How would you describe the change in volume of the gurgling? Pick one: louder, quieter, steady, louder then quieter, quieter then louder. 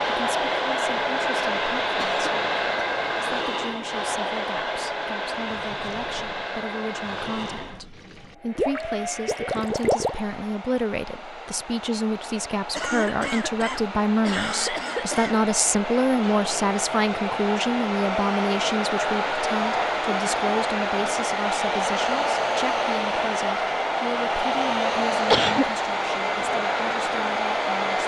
louder.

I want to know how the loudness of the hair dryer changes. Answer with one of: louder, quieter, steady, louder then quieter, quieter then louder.
quieter then louder.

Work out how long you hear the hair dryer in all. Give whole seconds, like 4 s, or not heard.
28 s.